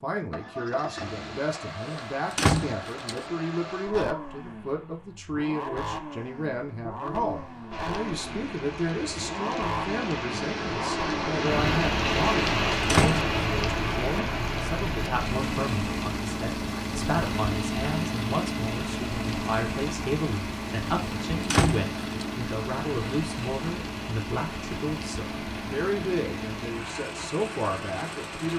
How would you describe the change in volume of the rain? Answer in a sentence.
The loudness of the rain goes down.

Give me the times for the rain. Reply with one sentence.
You can hear the rain from 7.7 to 28.5 s.